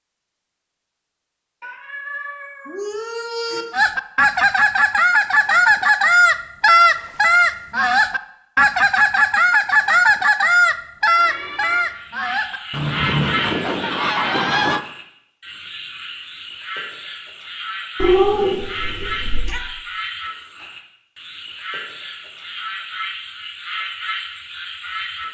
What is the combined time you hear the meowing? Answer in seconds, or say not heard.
4 s.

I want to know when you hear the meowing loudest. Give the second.
18 s.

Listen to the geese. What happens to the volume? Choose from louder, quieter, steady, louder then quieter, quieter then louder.
quieter.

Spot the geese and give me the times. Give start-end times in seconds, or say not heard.
3.7-14.8.